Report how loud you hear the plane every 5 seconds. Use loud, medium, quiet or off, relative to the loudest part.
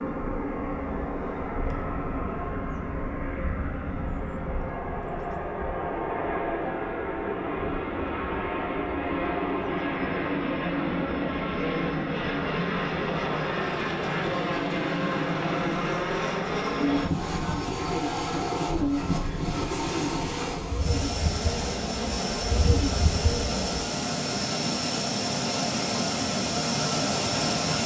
medium, loud, loud, loud, loud, loud.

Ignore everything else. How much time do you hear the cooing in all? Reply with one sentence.
You can hear the cooing for 7 seconds altogether.